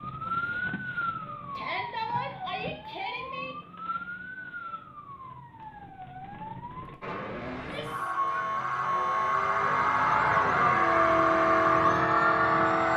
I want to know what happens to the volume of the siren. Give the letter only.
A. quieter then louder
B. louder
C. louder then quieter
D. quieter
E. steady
A.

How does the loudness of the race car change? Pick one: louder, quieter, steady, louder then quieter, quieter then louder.
louder.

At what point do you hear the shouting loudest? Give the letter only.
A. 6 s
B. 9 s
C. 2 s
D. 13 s
C.